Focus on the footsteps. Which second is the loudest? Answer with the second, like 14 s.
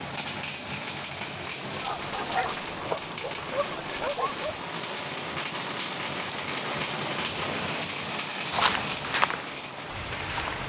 9 s.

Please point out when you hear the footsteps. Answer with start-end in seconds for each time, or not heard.
8.5-10.6.